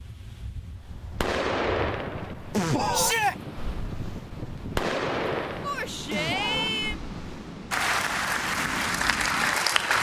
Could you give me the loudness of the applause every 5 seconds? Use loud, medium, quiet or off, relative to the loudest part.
off, loud.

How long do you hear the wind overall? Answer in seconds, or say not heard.
10 s.